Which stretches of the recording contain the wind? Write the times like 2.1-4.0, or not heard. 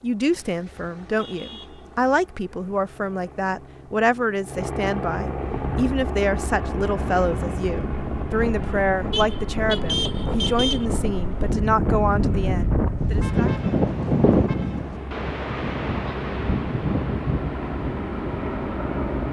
5.6-19.2.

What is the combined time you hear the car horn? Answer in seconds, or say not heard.
5 s.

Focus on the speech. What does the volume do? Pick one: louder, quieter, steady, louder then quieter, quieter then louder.
steady.